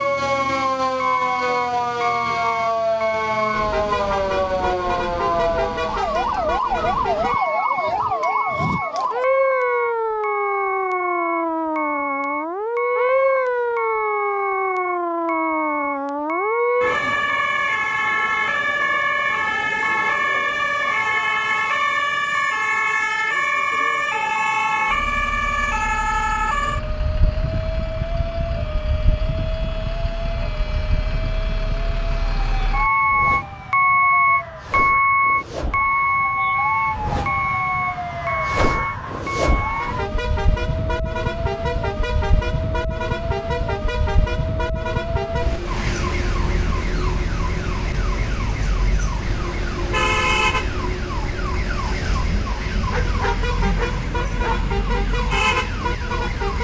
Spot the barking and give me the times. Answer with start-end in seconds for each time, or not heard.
52.9-54.7.